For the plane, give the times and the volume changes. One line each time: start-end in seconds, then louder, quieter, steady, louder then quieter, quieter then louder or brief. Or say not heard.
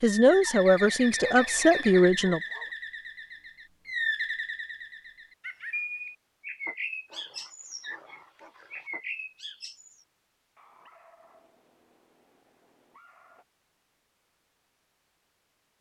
not heard.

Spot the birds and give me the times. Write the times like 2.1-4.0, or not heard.
0.0-10.1.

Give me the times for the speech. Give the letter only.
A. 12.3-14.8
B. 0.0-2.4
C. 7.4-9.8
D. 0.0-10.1
B.